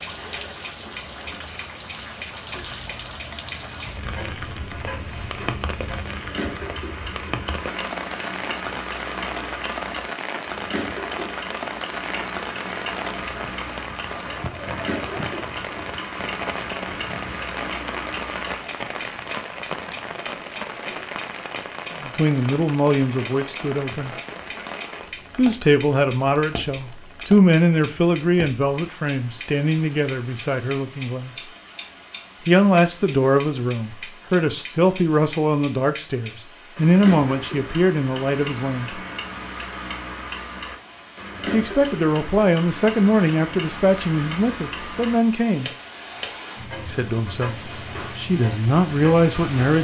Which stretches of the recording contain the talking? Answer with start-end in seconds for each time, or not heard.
22.0-24.1, 25.4-31.5, 32.5-39.0, 41.5-45.7, 46.9-49.7.